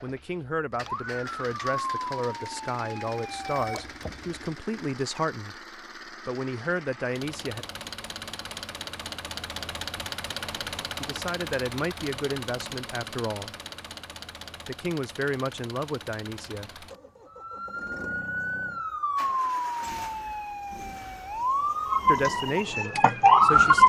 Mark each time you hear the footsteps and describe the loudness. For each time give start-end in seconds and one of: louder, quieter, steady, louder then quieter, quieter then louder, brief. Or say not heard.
not heard.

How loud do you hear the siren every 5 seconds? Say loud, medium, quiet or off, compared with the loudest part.
quiet, off, off, medium, loud.